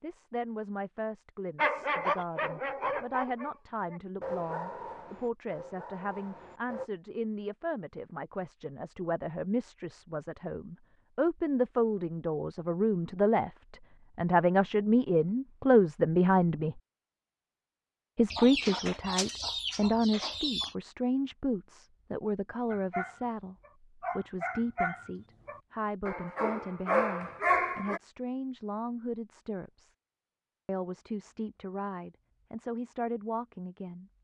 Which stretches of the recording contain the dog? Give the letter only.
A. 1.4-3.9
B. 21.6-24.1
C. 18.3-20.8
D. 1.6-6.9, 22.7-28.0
D.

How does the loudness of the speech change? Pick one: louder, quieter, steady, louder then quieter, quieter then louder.
louder then quieter.